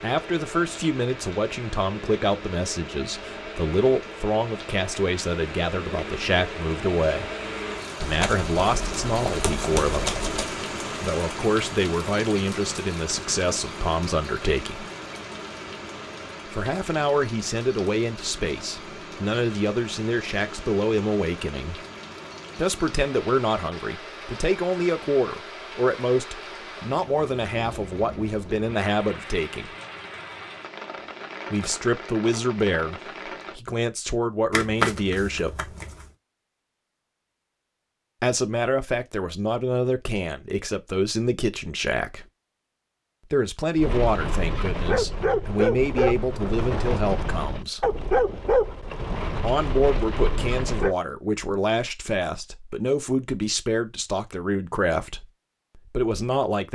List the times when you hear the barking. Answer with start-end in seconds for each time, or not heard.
43.8-51.0.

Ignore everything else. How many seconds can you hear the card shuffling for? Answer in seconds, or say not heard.
4 s.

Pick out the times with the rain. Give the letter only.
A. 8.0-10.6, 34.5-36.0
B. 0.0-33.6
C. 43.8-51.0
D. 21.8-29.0
B.